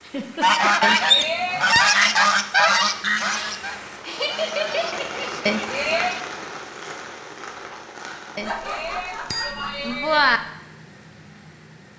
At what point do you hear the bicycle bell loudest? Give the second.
10 s.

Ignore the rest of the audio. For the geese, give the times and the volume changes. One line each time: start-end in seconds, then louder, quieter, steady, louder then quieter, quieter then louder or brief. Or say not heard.
0.4-6.2 quieter.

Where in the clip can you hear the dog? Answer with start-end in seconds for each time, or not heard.
not heard.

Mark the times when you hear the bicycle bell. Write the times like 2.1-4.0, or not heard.
0.8-1.9, 5.5-6.2, 8.3-10.4.